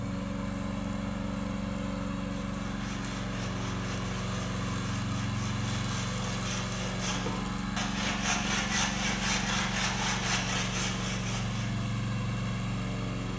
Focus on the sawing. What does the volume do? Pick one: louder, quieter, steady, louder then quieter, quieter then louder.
louder.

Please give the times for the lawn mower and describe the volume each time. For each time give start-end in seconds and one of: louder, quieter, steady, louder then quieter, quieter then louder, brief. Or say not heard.
0.0-13.3 steady.